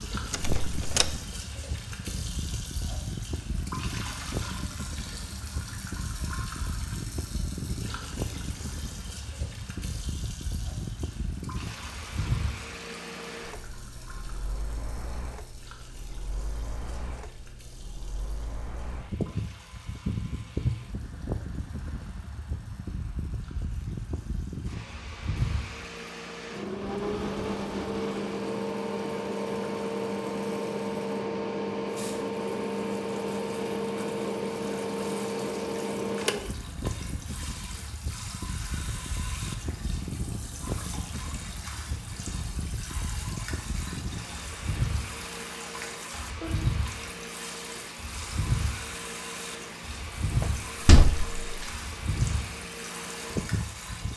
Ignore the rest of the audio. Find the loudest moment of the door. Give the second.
51 s.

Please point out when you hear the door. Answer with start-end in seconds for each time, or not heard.
0.3-1.1, 50.4-51.7.